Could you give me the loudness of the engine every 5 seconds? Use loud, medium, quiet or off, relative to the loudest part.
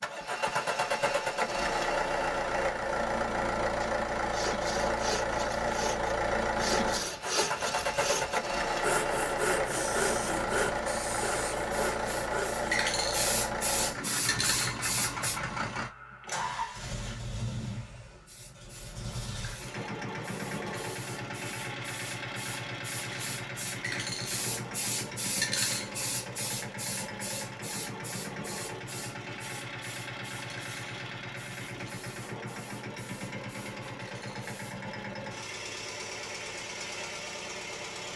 loud, loud, loud, medium, medium, medium, medium, medium.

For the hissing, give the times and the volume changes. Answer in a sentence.
You can hear the hissing from 9.7 to 15.4 s, getting louder; and from 18.1 to 34.9 s, getting louder then quieter.